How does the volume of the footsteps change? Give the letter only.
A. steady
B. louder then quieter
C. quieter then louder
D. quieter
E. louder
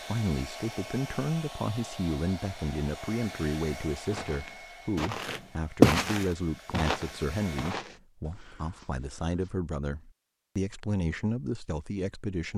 B.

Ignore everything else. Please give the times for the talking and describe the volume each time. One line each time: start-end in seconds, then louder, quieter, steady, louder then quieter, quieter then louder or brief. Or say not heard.
0.1-12.5 steady.